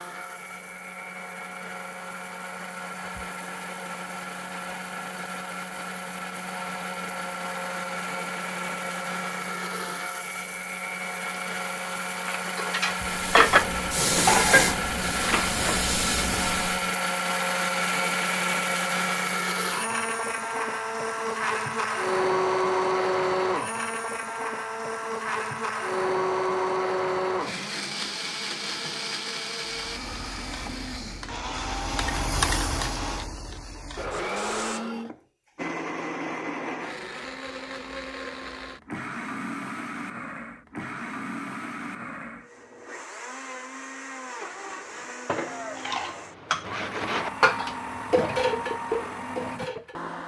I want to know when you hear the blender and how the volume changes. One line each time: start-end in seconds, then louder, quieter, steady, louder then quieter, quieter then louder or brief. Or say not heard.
0.0-50.2 louder then quieter.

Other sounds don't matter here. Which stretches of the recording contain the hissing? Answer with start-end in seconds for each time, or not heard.
13.0-16.9, 29.8-34.9.